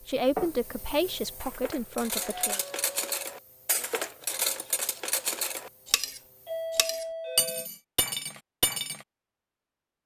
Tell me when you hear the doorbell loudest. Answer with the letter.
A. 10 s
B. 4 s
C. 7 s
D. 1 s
C.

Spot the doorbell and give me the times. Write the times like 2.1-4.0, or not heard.
2.2-3.1, 6.5-7.7.